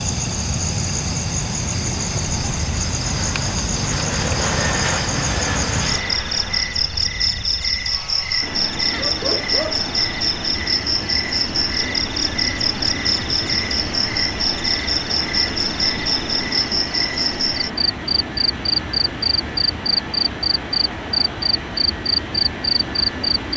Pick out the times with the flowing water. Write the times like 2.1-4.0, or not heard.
not heard.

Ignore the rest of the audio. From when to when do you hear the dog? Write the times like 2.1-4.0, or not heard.
8.9-9.8.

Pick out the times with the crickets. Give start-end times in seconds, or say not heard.
0.0-23.5.